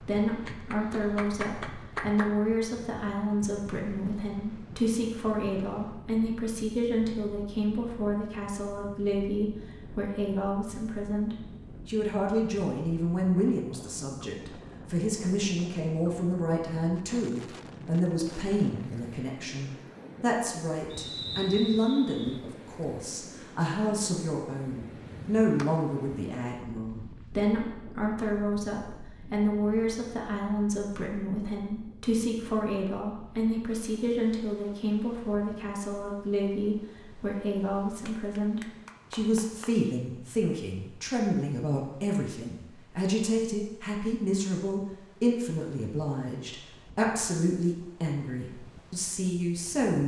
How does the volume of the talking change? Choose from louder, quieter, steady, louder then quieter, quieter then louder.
steady.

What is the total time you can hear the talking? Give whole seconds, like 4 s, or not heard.
50 s.